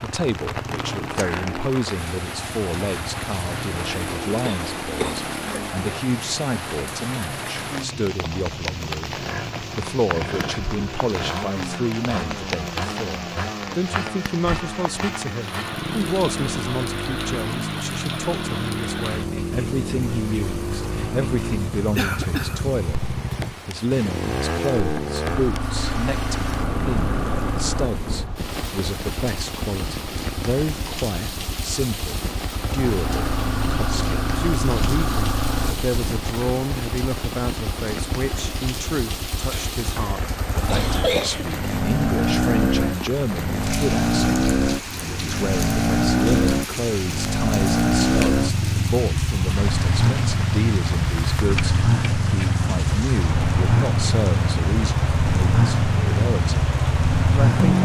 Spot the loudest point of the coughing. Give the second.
41 s.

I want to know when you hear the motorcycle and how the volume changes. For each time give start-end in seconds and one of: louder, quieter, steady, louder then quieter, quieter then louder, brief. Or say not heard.
0.2-57.7 louder.